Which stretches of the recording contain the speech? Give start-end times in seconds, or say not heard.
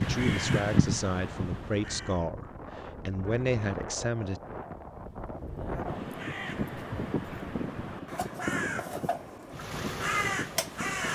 0.0-4.4.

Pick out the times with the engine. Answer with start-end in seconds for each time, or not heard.
9.5-11.1.